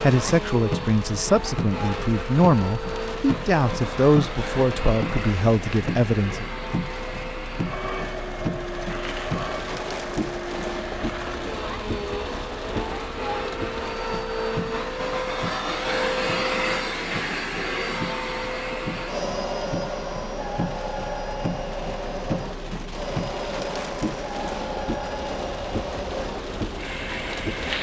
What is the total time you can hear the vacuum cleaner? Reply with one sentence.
The vacuum cleaner can be heard for 28 seconds in total.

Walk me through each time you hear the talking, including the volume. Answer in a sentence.
The talking can be heard from 0.0 to 6.5 s, at a steady volume.